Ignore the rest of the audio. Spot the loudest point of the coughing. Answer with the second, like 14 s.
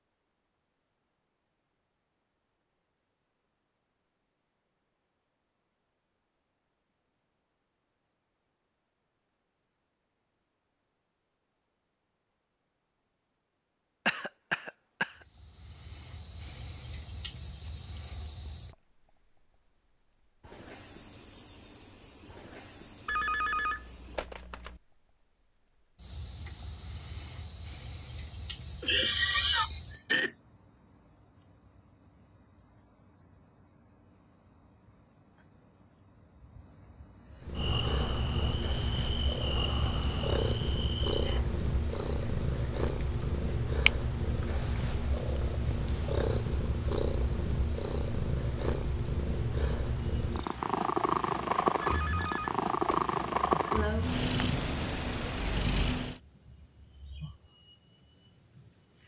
29 s.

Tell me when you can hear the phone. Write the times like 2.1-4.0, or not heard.
23.1-24.8, 51.8-53.0.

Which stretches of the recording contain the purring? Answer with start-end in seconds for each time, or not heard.
37.4-56.2.